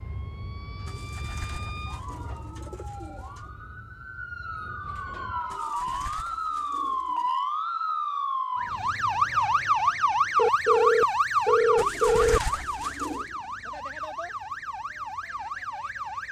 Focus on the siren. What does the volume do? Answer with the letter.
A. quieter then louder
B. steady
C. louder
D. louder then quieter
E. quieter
D.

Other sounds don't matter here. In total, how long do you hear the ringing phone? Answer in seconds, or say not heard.
2 s.